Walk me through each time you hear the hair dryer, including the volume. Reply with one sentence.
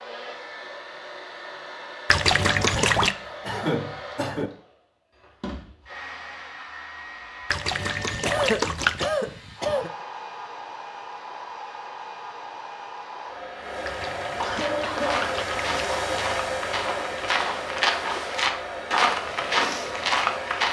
You can hear the hair dryer from 0.0 to 20.6 s, getting louder.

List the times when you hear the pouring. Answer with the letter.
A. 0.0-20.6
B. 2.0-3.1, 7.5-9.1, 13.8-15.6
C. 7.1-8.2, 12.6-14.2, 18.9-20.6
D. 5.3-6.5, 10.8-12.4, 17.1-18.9
B.